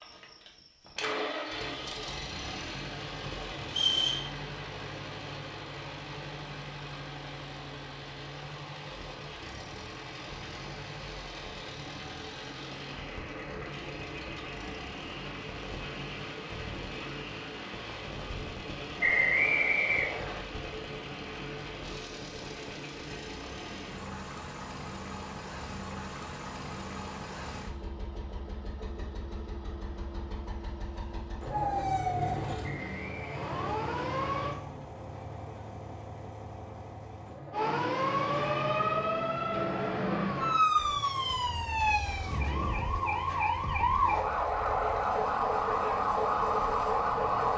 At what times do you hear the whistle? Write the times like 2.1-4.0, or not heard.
3.6-4.2, 19.0-20.4, 32.6-33.4.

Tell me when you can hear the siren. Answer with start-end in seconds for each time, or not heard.
31.5-34.5, 37.5-47.5.